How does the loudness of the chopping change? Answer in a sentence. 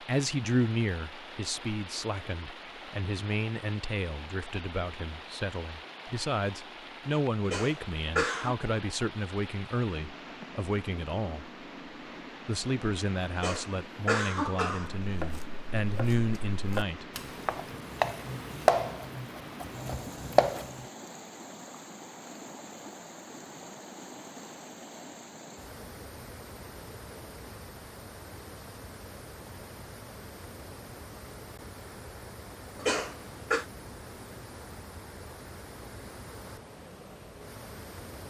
The volume of the chopping goes up.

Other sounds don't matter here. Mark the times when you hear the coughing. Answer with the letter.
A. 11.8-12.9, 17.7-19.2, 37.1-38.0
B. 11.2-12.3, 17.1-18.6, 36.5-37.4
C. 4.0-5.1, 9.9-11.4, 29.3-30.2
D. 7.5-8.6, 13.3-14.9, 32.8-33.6
D.